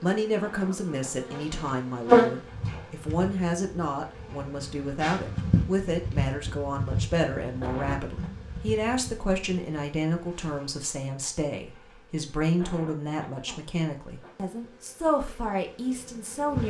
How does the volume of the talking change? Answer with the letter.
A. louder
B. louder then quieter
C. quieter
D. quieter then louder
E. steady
E.